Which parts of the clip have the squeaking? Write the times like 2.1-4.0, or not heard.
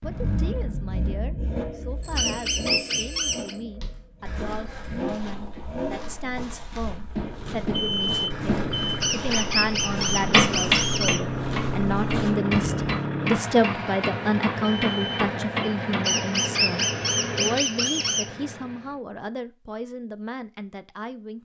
2.1-3.5, 9.0-11.2, 16.1-18.2.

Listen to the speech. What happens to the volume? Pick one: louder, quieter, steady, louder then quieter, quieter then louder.
louder then quieter.